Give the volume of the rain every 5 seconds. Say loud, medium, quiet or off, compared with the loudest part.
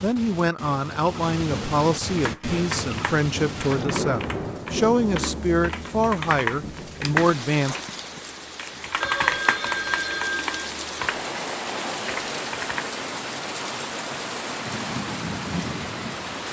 loud, medium, loud, loud.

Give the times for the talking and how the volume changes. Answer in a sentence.
You can hear the talking from 0.0 to 7.8 s, at a steady volume.